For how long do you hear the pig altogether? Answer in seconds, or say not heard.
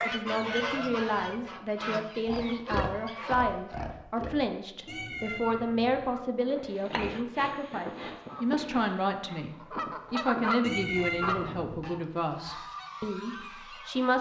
5 s.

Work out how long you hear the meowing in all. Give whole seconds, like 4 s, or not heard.
4 s.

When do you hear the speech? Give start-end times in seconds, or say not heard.
0.0-14.1.